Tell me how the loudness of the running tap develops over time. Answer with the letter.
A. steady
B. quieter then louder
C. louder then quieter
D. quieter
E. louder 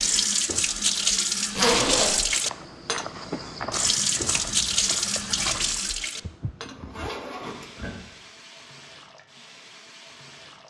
D.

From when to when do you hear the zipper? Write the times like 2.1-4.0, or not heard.
1.6-2.1, 6.6-7.9.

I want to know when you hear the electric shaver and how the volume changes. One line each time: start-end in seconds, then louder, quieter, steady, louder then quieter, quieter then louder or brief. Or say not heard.
not heard.